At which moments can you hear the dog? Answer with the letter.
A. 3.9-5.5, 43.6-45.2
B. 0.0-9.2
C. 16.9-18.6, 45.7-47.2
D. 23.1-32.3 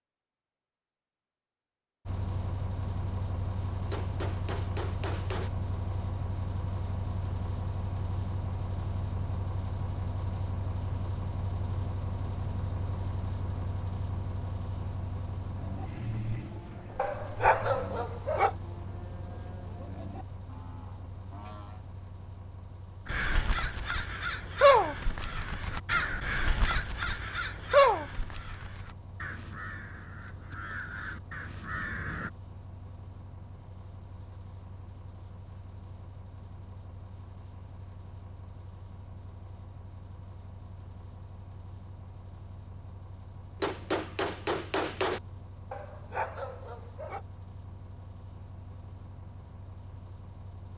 C.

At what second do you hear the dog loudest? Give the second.
18 s.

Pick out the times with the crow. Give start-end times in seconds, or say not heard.
23.1-32.3.